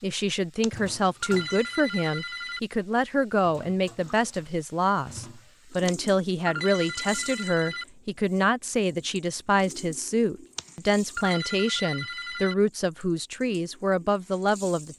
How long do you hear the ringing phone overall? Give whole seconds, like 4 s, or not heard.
6 s.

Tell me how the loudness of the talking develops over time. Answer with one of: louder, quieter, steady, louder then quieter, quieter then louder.
steady.